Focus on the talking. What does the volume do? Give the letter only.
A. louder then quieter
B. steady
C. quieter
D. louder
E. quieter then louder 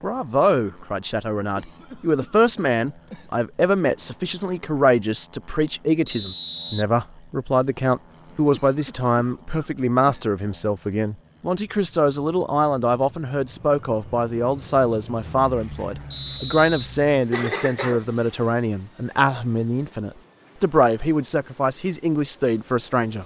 B.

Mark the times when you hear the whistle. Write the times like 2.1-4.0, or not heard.
6.0-6.8, 16.1-16.9.